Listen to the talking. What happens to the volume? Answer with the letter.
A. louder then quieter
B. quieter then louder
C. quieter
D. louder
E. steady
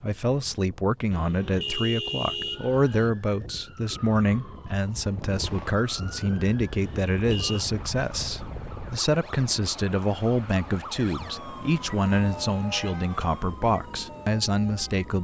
E.